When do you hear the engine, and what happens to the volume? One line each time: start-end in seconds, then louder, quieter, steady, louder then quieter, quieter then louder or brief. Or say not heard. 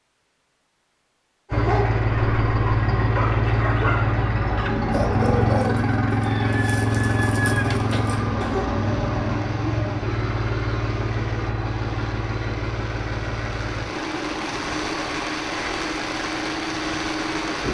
1.5-17.6 quieter.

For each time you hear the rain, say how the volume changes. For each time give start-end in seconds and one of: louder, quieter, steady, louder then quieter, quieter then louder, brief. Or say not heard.
8.0-17.6 louder.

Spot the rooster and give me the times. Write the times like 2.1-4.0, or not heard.
6.2-7.8.